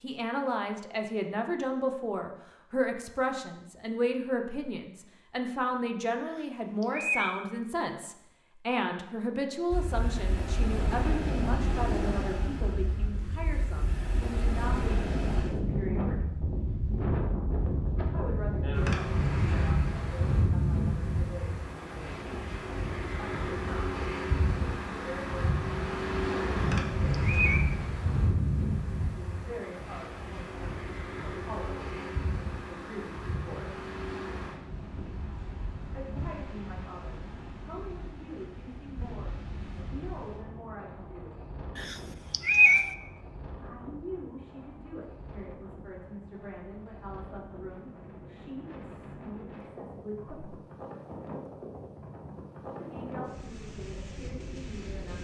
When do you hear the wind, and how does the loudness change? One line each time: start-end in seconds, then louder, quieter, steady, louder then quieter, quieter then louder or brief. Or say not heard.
9.7-55.2 quieter.